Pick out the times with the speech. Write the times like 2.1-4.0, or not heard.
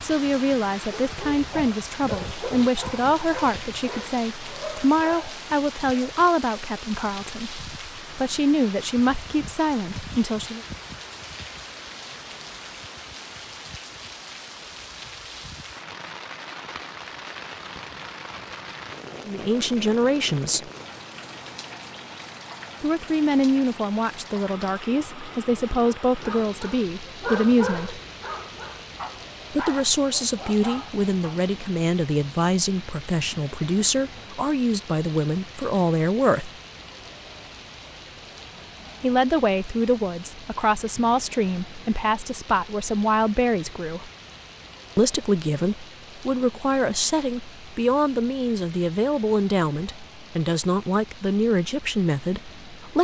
0.0-10.7, 19.2-20.7, 22.8-28.0, 29.5-36.5, 39.0-44.1, 45.0-52.9.